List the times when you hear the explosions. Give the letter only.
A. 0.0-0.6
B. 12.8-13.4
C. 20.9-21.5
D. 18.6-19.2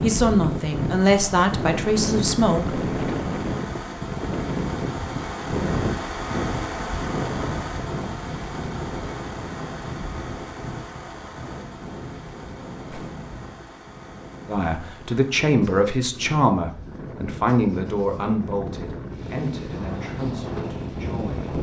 B.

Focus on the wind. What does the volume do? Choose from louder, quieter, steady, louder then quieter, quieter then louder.
quieter then louder.